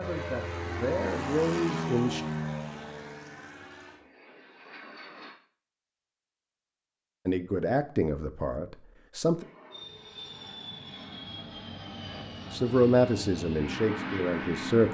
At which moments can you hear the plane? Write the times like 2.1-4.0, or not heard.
0.0-5.3, 9.3-14.8.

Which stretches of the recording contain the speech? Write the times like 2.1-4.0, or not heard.
0.0-2.2, 7.2-9.4, 12.5-14.8.